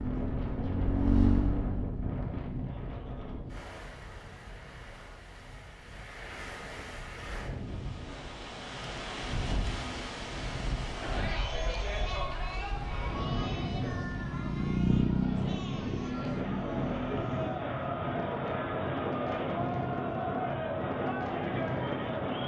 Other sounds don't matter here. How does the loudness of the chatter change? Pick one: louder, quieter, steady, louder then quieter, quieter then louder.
quieter then louder.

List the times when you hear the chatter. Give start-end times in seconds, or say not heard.
10.9-22.4.